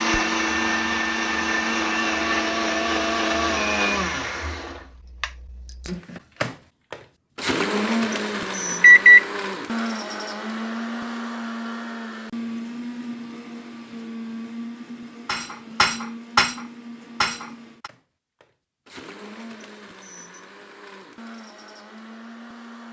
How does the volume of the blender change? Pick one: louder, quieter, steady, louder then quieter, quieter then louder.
quieter.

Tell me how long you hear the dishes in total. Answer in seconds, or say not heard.
3 s.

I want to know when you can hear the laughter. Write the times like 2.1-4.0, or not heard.
not heard.